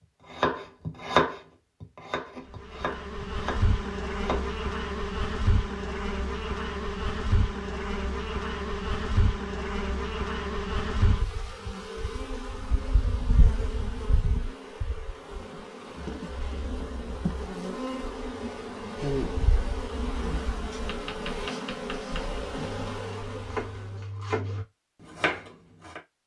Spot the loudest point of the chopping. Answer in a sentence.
The volume of the chopping peaks at 1 second.